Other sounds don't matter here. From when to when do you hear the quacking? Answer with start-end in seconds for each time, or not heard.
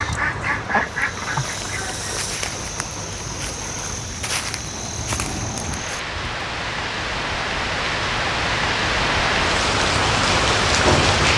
0.0-2.2.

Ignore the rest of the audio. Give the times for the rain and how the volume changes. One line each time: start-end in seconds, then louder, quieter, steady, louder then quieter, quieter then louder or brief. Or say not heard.
0.0-11.3 louder.